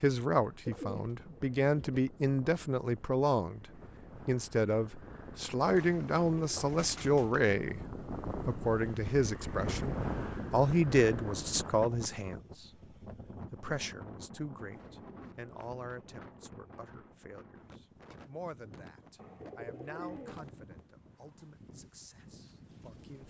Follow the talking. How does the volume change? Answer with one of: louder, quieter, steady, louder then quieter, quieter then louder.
quieter.